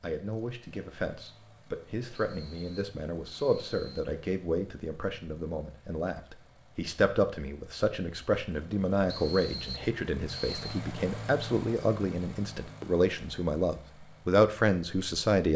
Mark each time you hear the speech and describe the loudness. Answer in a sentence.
The speech can be heard from 0.0 to 15.5 s, getting louder.